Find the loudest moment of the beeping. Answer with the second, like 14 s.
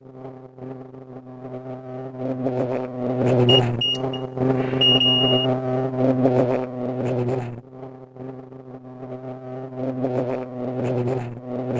5 s.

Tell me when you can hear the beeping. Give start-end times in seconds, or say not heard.
3.5-5.5.